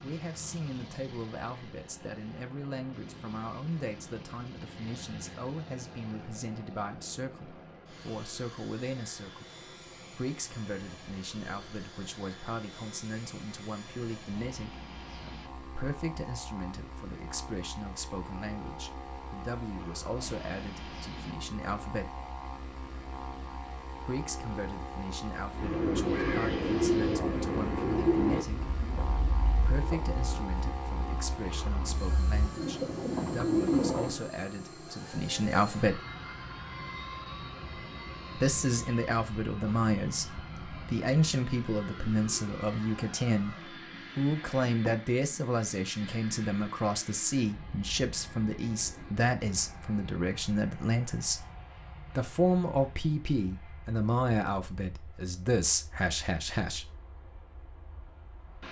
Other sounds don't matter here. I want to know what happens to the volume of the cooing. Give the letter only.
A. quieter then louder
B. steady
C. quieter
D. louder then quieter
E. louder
A.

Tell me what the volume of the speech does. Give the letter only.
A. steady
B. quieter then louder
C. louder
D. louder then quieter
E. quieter
C.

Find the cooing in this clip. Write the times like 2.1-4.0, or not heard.
25.5-34.2.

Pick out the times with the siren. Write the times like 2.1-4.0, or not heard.
not heard.